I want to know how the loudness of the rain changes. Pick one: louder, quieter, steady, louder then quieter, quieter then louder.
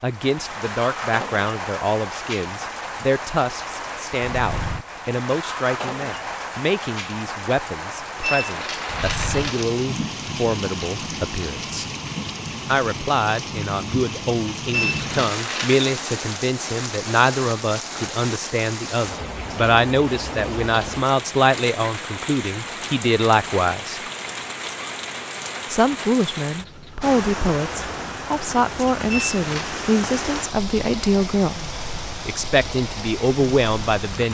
steady.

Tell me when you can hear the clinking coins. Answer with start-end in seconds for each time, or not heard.
8.2-9.7, 14.7-16.0, 29.1-29.8.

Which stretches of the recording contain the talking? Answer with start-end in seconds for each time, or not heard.
0.0-11.9, 12.7-24.0, 25.7-31.6, 32.2-34.3.